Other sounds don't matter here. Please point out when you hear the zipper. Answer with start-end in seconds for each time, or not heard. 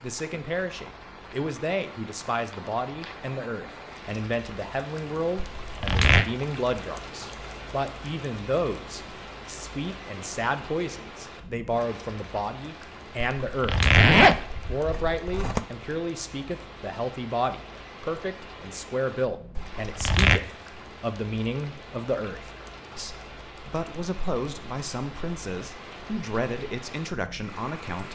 5.6-6.2, 13.4-15.7, 19.6-20.4.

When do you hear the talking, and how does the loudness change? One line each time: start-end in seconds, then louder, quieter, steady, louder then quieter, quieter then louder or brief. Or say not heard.
0.0-13.8 steady
14.7-28.1 steady.